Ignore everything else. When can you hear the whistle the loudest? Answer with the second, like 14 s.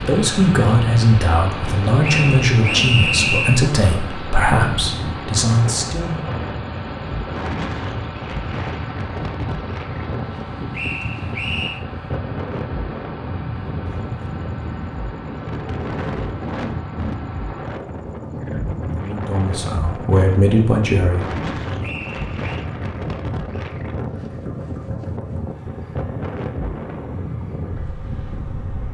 3 s.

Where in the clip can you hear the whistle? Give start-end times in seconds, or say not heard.
2.0-3.7, 10.7-11.8, 21.8-22.4.